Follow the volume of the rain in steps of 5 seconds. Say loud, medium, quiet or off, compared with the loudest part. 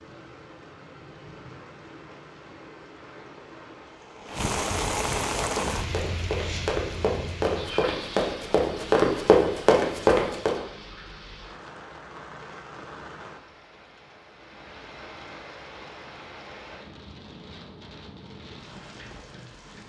loud, loud, medium, medium.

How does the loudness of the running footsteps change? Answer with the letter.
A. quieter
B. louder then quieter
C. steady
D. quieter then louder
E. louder
E.